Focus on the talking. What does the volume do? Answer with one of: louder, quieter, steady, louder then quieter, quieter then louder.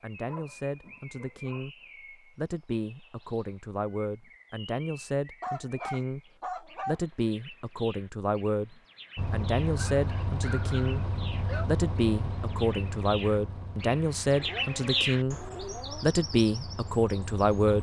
louder.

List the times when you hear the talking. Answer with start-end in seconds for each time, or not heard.
0.0-17.7.